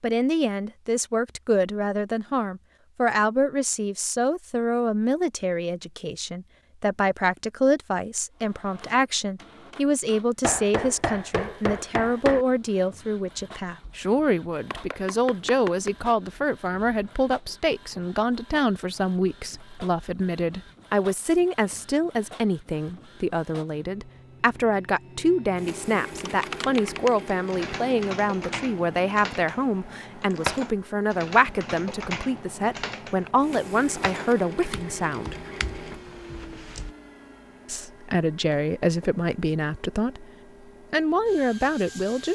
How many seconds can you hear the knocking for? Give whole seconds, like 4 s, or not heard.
4 s.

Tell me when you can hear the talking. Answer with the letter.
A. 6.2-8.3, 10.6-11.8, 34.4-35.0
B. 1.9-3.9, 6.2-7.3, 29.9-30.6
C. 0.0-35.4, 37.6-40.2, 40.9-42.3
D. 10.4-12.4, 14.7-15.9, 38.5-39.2
C.